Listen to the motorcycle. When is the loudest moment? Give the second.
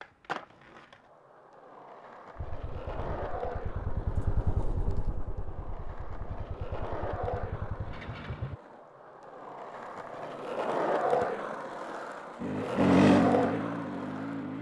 13 s.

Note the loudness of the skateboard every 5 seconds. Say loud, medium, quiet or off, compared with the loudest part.
medium, medium, loud.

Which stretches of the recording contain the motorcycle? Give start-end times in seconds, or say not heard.
2.4-8.6, 12.3-14.5.